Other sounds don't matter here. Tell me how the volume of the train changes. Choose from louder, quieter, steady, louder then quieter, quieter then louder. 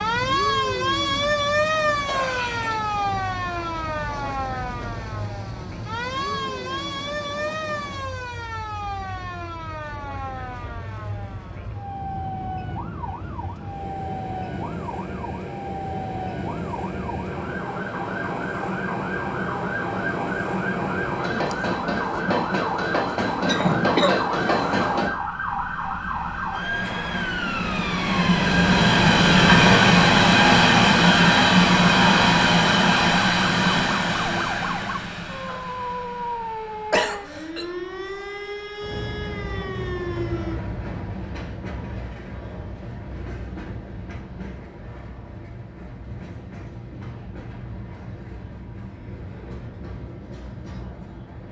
louder then quieter.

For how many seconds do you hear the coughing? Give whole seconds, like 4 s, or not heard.
2 s.